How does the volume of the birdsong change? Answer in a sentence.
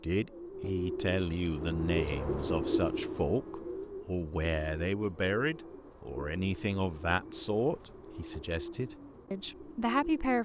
The volume of the birdsong goes down.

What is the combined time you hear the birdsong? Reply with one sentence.
The birdsong can be heard for 10 seconds in total.